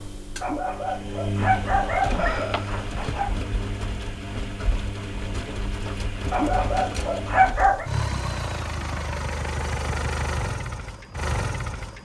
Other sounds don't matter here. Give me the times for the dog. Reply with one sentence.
The dog can be heard from 0.4 to 3.3 s and from 6.3 to 7.9 s.